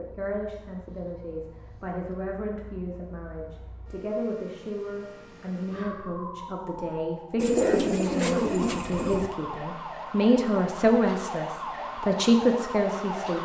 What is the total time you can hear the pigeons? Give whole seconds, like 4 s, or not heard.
2 s.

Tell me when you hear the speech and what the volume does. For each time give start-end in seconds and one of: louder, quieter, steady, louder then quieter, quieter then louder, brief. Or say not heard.
0.0-13.4 louder.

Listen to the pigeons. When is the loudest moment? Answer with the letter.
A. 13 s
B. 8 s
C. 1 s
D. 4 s
B.